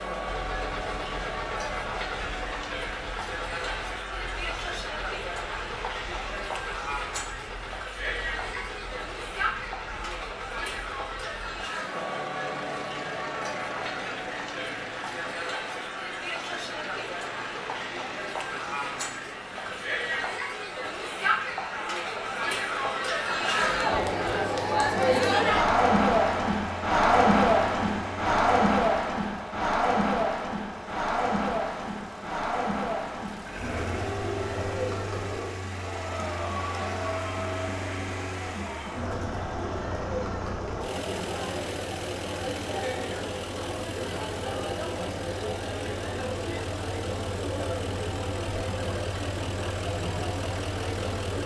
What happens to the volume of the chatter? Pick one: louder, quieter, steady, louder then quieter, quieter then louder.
louder then quieter.